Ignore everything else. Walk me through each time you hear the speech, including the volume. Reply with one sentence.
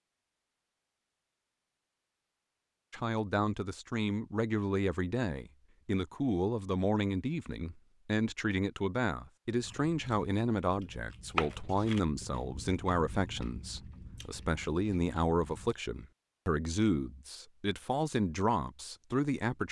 You can hear the speech from 2.9 to 19.6 s, at a steady volume.